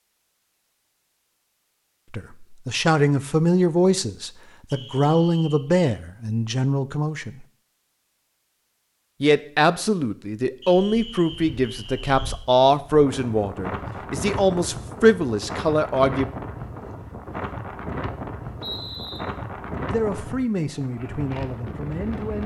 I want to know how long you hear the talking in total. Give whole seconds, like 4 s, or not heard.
15 s.